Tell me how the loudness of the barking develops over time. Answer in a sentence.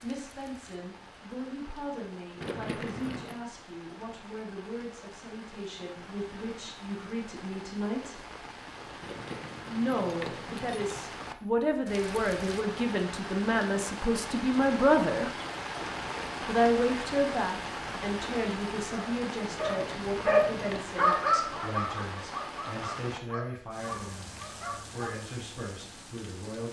The volume of the barking goes down.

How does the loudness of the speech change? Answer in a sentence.
The volume of the speech goes up, then down.